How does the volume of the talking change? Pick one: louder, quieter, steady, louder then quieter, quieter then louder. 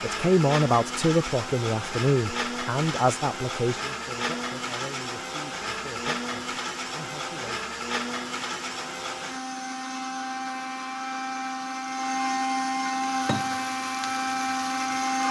quieter.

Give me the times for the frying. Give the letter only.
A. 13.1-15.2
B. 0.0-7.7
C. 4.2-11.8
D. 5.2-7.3
A.